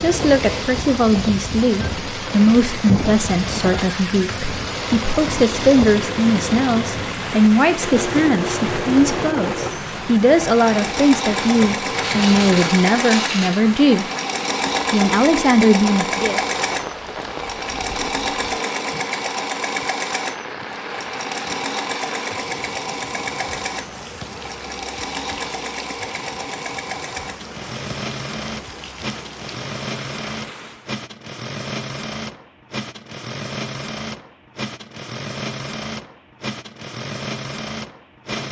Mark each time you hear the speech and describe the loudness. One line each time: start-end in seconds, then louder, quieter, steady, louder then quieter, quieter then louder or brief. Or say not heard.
0.0-14.1 steady
14.9-16.4 brief.